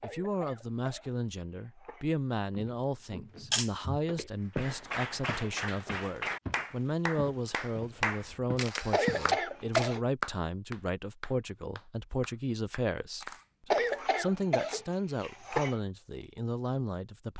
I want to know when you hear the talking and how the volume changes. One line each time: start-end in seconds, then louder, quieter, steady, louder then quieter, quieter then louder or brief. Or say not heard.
0.0-17.3 steady.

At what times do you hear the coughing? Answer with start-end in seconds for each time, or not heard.
0.0-2.1, 8.9-10.0, 13.7-15.8.